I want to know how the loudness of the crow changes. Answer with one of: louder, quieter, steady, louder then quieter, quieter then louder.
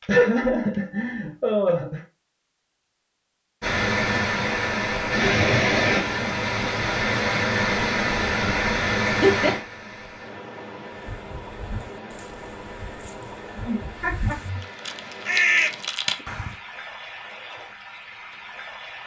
quieter then louder.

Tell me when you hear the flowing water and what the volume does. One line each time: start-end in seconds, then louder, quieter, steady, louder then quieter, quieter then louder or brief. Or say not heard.
3.6-19.0 quieter.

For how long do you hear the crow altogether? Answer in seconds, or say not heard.
6 s.